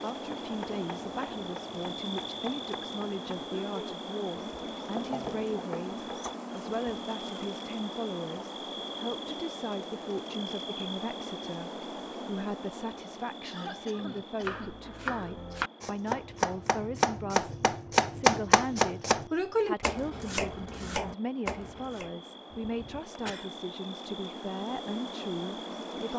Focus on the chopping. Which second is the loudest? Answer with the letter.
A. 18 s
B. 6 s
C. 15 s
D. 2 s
A.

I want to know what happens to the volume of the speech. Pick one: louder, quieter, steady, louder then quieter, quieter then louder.
steady.